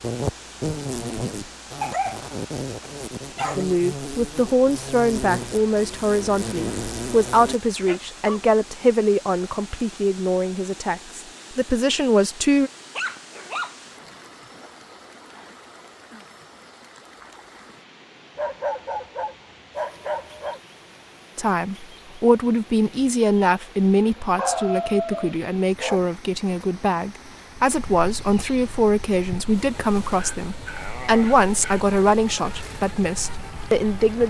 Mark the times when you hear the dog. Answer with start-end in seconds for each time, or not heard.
1.8-3.6, 7.7-8.8, 12.9-14.7, 18.4-20.6, 24.4-26.0, 30.1-31.9.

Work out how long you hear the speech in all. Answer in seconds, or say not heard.
22 s.